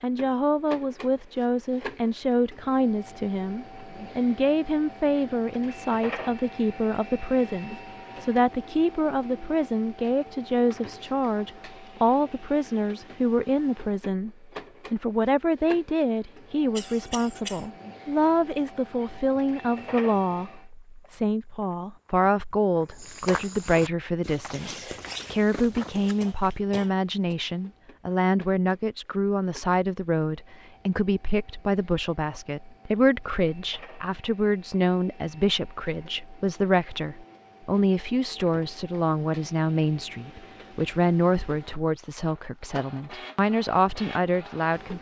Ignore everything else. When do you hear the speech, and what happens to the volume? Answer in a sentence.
The speech can be heard from 0.0 to 44.9 s, at a steady volume.